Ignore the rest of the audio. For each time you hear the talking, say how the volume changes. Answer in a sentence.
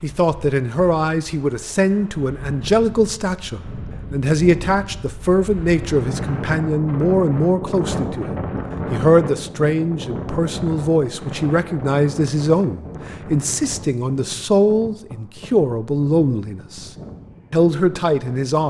You can hear the talking from 0.0 to 16.9 s, at a steady volume; and briefly from 17.5 to 18.6 s.